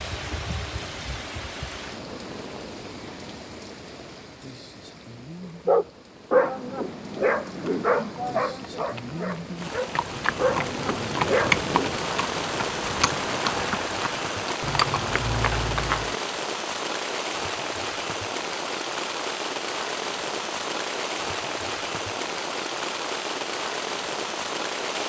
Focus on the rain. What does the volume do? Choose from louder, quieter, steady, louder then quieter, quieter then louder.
louder.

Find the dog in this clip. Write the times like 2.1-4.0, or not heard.
5.7-12.0.